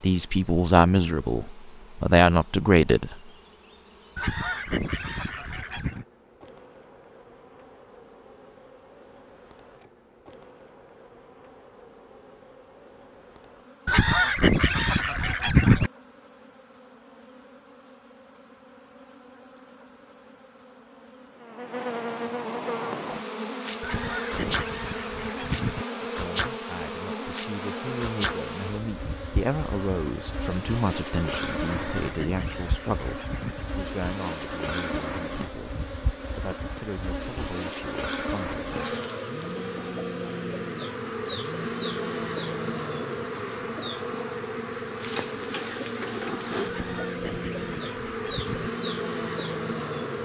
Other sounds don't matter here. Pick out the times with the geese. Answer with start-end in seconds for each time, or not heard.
4.2-6.0, 13.8-15.9, 23.8-25.9, 31.6-33.6, 46.6-48.7.